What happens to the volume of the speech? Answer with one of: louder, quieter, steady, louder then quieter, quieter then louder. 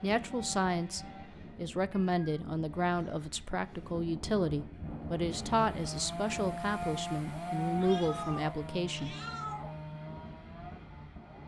steady.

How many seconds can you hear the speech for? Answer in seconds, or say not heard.
9 s.